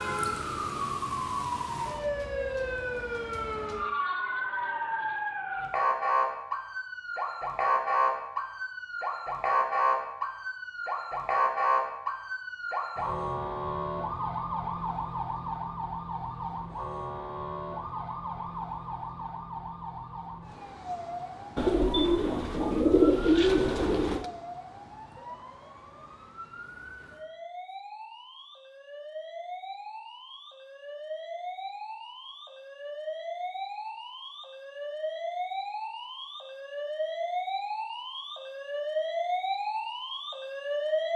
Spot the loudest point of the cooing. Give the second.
23 s.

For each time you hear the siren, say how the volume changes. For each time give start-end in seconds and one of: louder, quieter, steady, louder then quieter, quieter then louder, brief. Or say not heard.
0.0-41.1 quieter then louder.